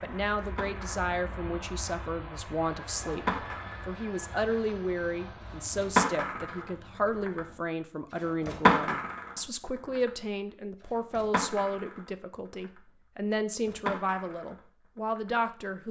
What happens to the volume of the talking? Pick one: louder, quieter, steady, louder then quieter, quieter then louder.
steady.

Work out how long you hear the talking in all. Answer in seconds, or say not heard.
16 s.